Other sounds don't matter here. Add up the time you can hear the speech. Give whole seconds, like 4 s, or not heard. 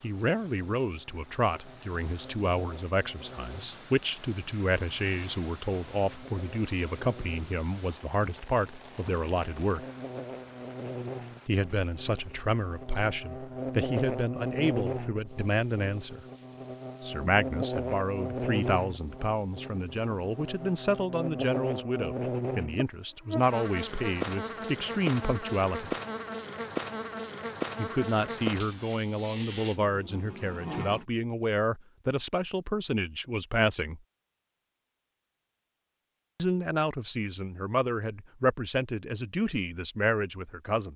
34 s.